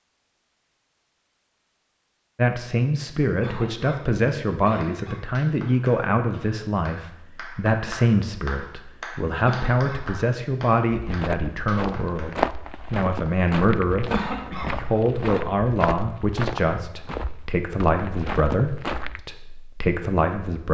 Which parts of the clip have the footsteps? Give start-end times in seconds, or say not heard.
10.9-19.2.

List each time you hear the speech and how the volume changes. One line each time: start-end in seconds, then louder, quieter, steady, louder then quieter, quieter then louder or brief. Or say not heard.
2.4-20.6 steady.